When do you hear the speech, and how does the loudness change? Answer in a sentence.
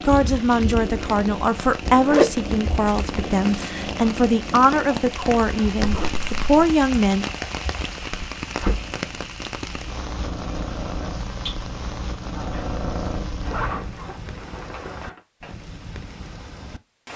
You can hear the speech from 0.1 to 7.3 s, at a steady volume.